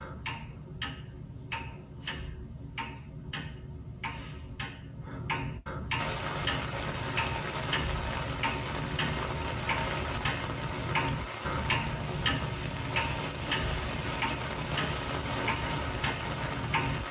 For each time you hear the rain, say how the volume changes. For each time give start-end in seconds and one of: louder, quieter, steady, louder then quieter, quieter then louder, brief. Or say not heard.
6.0-17.0 steady.